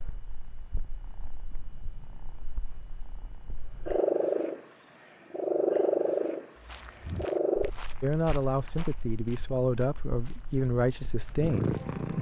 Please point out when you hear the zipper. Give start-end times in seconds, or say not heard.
not heard.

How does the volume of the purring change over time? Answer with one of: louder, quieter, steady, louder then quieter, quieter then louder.
louder then quieter.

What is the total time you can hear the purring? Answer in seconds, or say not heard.
12 s.